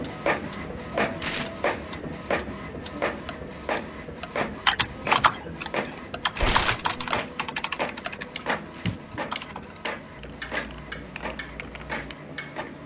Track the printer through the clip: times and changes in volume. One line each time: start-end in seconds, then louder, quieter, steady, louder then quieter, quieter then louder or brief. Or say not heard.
0.0-12.8 quieter.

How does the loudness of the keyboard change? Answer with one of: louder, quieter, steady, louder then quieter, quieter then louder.
quieter.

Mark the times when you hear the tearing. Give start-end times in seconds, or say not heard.
1.2-1.6, 6.3-7.0, 8.7-9.2.